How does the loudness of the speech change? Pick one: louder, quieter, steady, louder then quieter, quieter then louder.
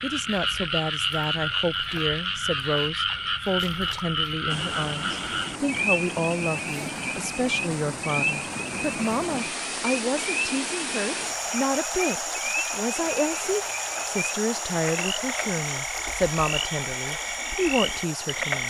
steady.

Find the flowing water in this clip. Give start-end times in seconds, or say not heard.
4.5-18.6.